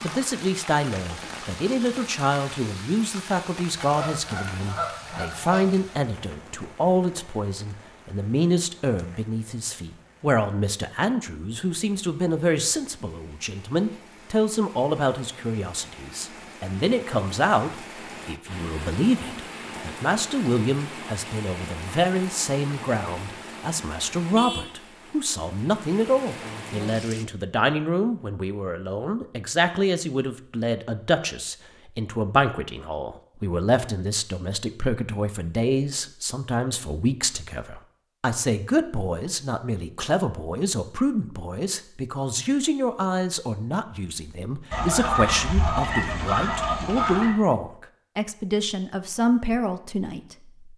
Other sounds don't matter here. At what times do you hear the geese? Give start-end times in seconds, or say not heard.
3.8-5.9, 44.7-47.4.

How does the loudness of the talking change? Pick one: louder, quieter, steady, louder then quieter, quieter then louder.
steady.